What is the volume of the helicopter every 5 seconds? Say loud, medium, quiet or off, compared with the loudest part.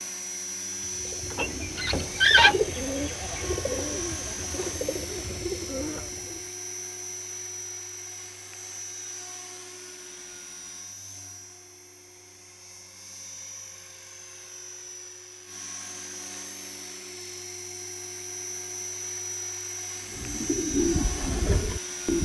loud, loud, medium, loud, loud.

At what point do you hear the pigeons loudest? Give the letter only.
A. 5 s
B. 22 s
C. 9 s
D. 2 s
D.